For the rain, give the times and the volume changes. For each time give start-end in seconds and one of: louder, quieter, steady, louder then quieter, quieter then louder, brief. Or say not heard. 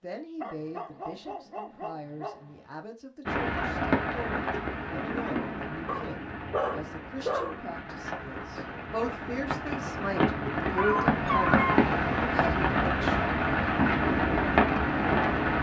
3.2-15.5 quieter then louder.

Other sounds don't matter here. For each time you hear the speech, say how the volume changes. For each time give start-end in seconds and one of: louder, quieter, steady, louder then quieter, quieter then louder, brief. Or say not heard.
0.0-13.2 louder.